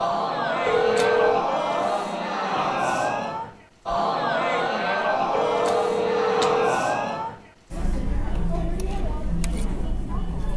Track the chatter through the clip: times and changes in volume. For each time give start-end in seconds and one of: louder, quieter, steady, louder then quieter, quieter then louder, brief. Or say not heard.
0.0-10.5 quieter.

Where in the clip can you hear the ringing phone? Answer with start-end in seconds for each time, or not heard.
0.7-1.4, 5.3-6.8.